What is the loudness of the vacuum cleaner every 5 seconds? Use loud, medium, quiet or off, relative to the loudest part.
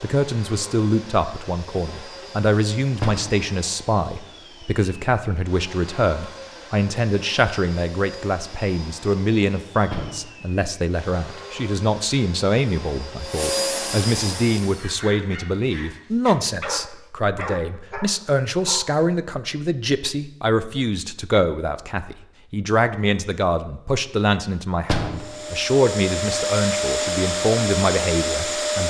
quiet, quiet, medium, off, off, loud.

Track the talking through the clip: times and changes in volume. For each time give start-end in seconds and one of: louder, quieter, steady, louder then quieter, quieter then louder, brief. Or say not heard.
0.0-28.8 steady.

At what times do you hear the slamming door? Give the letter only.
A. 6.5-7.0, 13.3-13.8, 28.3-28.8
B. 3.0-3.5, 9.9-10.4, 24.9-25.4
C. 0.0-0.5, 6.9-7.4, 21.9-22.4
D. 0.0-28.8
B.